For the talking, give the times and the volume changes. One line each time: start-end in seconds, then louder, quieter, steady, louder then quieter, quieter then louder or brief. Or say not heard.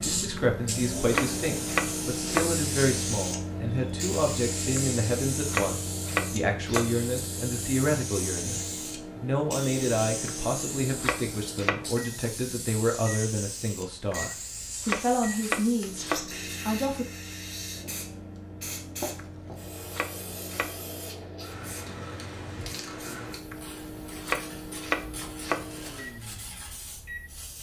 0.0-16.1 steady
16.6-17.1 brief.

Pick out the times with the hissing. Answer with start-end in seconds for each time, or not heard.
0.0-27.5.